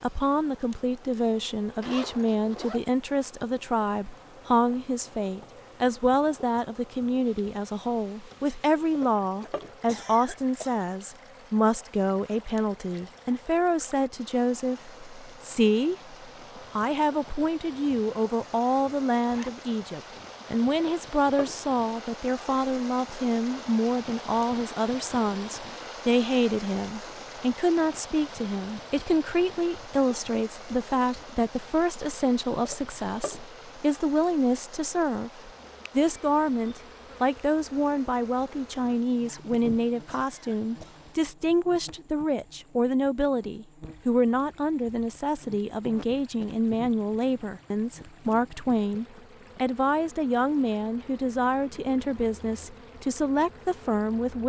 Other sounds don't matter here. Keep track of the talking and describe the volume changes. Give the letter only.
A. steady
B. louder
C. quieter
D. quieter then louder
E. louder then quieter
A.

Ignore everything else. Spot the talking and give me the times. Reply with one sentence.
You can hear the talking from 0.0 to 54.4 s.